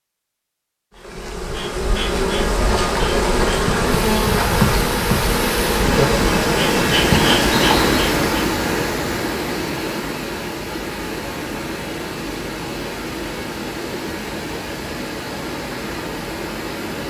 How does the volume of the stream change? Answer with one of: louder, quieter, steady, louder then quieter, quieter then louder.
louder then quieter.